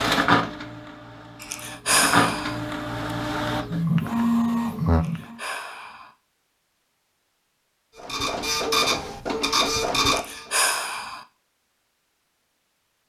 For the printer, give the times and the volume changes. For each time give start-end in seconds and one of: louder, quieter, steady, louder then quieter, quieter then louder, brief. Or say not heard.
0.0-5.3 louder
8.0-10.8 brief.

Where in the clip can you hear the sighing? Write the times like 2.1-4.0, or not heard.
1.4-2.6, 4.9-6.1, 10.1-11.2.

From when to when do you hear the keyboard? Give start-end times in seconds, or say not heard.
not heard.